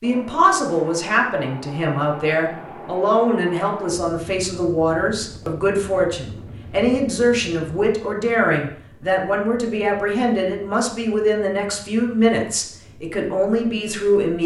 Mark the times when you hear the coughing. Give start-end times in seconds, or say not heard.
not heard.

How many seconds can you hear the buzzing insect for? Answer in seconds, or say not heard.
not heard.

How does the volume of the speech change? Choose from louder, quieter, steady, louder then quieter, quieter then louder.
steady.